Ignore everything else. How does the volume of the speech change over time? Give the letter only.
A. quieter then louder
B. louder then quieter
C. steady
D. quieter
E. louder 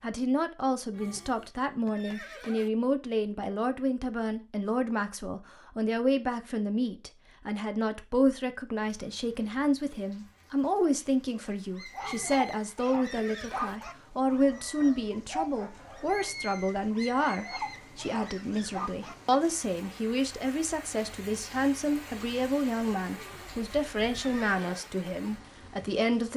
C.